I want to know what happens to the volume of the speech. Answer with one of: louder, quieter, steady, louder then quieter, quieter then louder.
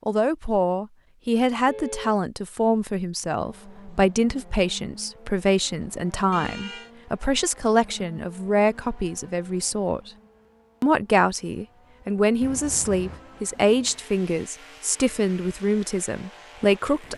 steady.